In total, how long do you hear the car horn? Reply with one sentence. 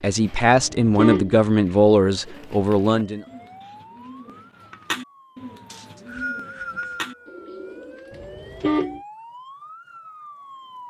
The car horn can be heard for 2 seconds in total.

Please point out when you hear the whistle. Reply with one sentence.
The whistle can be heard from 5.7 to 7.2 s.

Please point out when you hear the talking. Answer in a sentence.
The talking can be heard from 0.0 to 3.2 s.